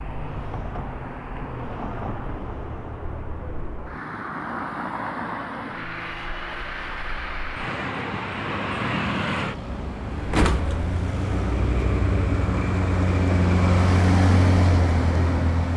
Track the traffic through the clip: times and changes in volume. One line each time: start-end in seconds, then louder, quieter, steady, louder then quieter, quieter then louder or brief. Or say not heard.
0.0-15.7 louder.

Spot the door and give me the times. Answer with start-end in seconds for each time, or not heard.
10.3-10.8.